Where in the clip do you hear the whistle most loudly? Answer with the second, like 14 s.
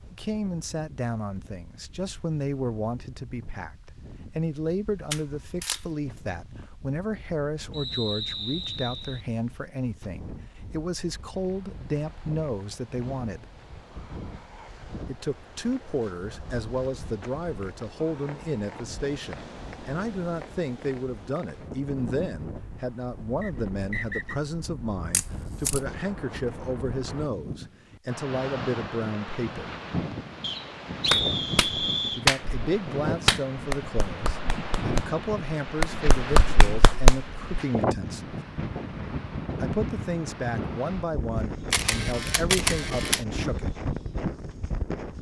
31 s.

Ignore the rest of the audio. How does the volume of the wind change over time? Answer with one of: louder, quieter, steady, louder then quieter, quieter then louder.
louder.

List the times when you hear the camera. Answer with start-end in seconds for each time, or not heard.
5.1-5.8, 25.1-25.8, 41.7-43.2.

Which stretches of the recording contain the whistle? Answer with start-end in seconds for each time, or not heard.
7.7-9.2, 23.4-24.4, 30.4-32.2.